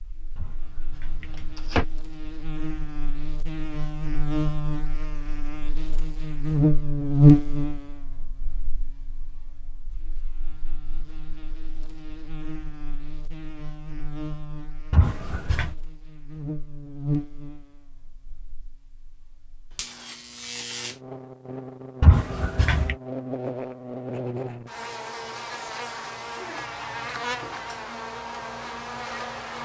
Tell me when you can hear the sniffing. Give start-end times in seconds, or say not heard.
not heard.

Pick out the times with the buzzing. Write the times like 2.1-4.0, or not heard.
0.0-29.6.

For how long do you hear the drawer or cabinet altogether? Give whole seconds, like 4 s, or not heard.
3 s.